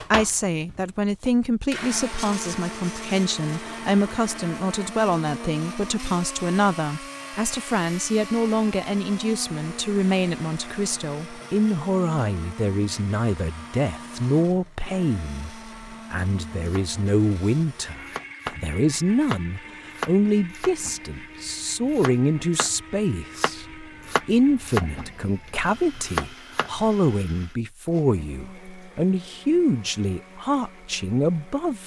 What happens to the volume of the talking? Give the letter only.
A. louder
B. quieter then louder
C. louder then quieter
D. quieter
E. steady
E.